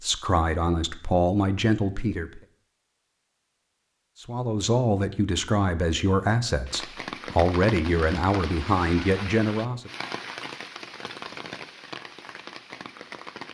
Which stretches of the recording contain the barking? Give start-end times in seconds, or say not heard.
not heard.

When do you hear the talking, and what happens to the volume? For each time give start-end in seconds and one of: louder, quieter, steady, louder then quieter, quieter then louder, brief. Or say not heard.
0.0-2.4 brief
4.2-9.9 steady.